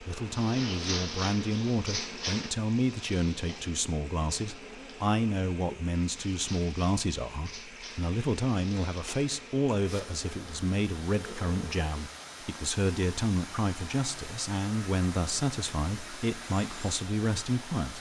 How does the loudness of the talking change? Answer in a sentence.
The loudness of the talking stays about the same.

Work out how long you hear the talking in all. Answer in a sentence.
You can hear the talking for 18 seconds altogether.